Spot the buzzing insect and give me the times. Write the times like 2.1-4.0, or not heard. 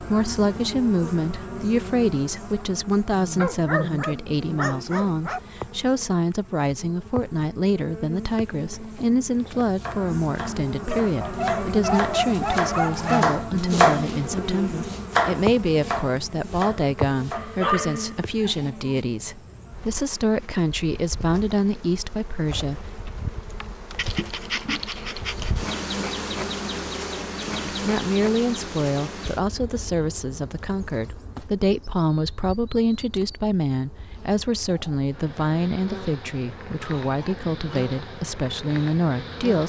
0.0-39.6.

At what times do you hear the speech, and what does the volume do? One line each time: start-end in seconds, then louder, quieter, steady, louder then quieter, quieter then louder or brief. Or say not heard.
0.0-22.9 steady
27.6-39.6 steady.